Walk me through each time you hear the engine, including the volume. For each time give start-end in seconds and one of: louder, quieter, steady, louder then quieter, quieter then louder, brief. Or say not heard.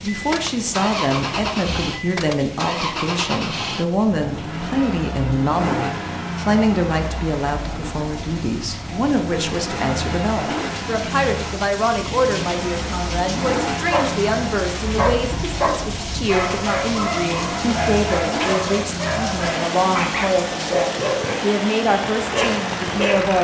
0.0-23.3 steady.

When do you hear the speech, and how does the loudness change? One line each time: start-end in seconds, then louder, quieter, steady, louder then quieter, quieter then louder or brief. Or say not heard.
0.0-23.3 steady.